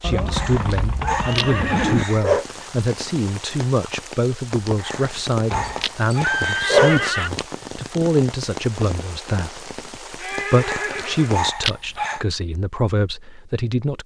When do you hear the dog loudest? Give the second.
7 s.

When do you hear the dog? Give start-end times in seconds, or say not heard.
0.3-2.5, 4.8-7.5, 10.6-12.2.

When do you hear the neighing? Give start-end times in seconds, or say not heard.
0.0-2.0, 5.5-7.3, 10.2-11.4.